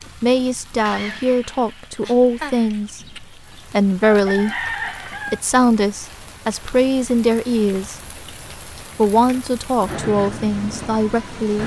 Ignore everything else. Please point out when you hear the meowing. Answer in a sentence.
The meowing can't be heard in this clip.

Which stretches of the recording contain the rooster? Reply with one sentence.
You can hear the rooster from 2.7 to 5.4 s.